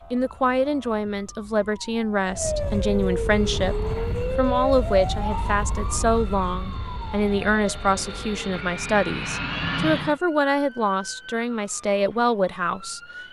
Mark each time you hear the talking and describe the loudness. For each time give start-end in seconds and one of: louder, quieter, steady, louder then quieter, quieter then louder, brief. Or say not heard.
0.1-13.0 steady.